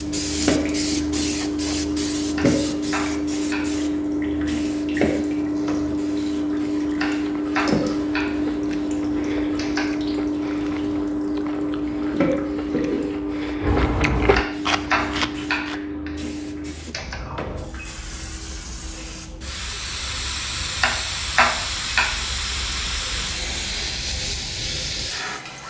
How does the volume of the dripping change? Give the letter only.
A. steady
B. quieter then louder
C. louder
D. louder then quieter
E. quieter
E.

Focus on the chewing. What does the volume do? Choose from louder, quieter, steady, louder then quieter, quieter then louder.
louder.